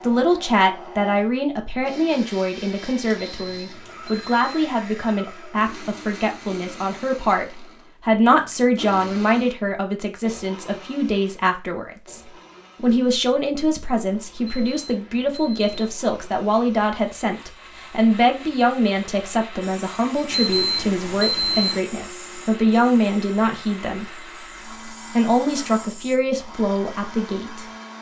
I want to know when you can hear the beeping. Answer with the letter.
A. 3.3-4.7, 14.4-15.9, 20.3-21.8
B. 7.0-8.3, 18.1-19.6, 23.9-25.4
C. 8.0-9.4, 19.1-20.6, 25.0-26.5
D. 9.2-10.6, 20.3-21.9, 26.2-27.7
A.